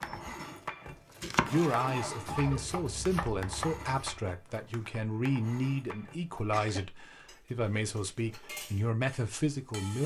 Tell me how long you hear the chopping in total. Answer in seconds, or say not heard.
4 s.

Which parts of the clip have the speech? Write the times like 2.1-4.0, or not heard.
1.5-10.0.